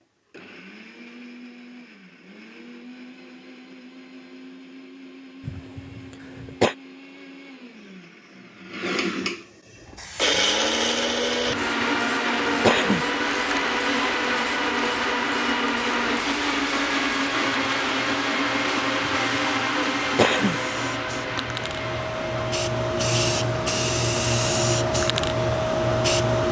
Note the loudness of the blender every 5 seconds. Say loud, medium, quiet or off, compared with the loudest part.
quiet, quiet, loud, loud, medium, off.